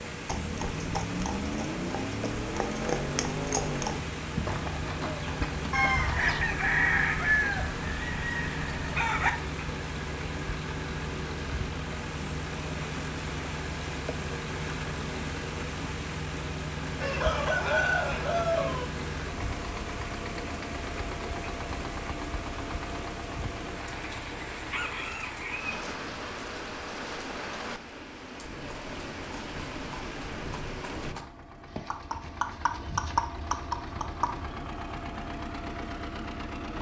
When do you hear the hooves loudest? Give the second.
33 s.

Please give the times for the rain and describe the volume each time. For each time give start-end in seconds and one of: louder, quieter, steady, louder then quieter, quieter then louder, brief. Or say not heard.
0.0-31.1 steady.